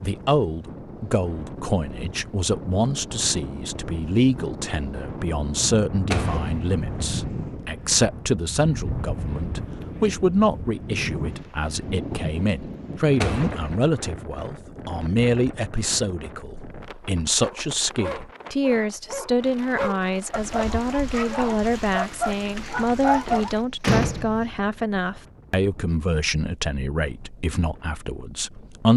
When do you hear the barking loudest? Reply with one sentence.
The volume of the barking peaks at 23 seconds.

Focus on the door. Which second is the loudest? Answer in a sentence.
The loudest moment of the door is at 24 seconds.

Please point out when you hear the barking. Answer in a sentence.
You can hear the barking from 17.4 to 23.6 s.